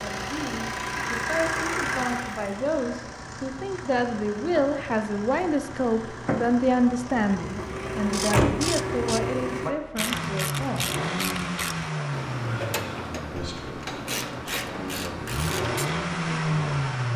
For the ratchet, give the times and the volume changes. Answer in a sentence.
The ratchet can be heard from 8.1 to 15.9 s, at a steady volume.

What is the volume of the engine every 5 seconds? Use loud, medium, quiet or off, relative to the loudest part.
medium, loud, medium, loud.